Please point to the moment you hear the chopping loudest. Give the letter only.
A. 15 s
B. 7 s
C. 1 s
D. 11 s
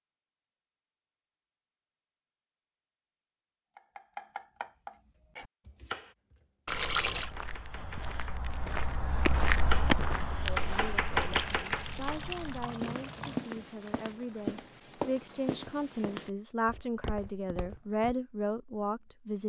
D.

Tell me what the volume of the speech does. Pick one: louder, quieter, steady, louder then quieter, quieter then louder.
louder.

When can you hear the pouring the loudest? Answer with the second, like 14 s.
7 s.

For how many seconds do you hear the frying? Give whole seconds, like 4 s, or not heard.
not heard.